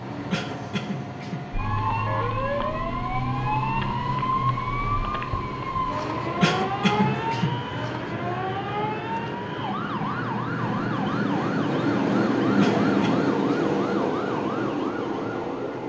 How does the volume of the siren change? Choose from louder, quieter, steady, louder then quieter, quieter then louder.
quieter.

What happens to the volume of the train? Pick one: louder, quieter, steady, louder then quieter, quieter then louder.
louder.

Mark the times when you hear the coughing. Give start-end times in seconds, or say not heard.
0.3-1.4, 6.4-7.5, 12.6-13.8.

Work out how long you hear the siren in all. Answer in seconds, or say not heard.
14 s.